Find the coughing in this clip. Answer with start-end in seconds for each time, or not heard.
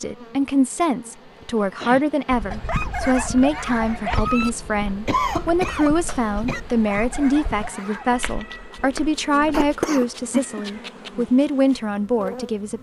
1.6-2.0, 5.0-6.6, 9.5-10.6.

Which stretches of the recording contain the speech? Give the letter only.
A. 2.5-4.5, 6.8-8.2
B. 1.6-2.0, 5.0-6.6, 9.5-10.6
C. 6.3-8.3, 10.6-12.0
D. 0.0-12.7
D.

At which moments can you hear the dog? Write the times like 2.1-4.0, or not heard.
2.5-4.5, 6.8-8.2.